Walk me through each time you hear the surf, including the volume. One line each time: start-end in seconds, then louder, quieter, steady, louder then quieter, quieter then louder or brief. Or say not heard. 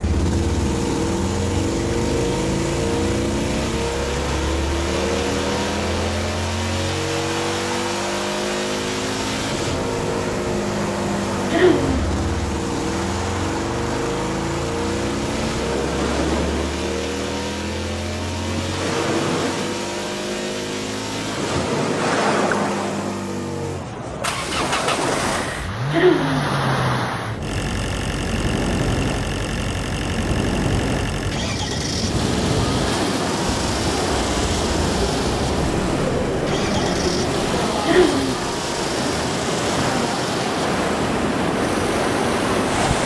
0.0-43.0 louder.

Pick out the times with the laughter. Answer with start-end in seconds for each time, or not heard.
11.5-12.0, 25.9-26.4, 37.9-38.4.